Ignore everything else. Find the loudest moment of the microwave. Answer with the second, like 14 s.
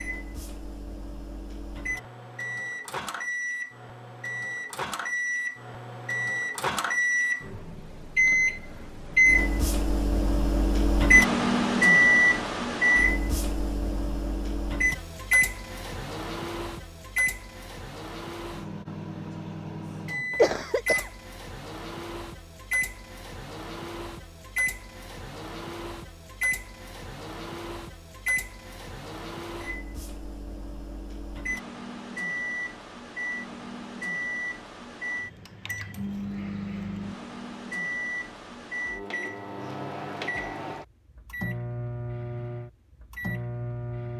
12 s.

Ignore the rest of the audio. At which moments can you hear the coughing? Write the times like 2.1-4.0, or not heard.
20.4-21.1.